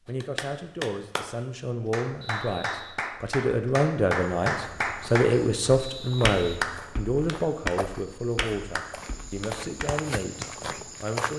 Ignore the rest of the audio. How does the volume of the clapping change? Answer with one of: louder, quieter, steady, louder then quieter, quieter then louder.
louder then quieter.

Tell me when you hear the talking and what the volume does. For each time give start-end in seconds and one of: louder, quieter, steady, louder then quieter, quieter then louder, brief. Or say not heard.
0.1-11.3 louder then quieter.